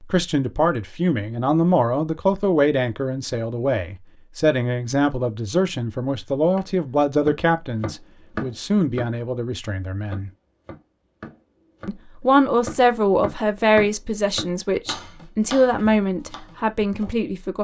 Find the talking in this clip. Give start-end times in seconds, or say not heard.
0.0-10.3, 11.8-17.5.